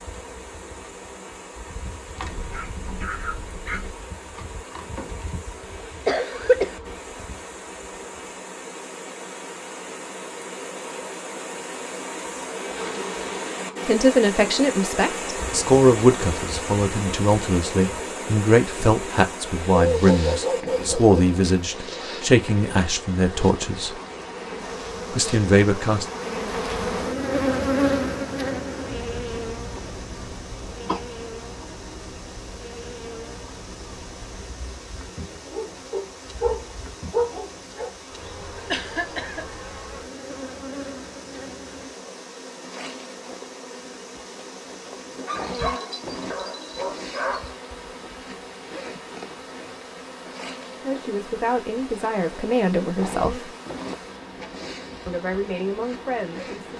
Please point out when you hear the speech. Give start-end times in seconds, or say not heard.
13.8-23.9, 25.1-26.1, 50.8-53.5, 55.0-56.7.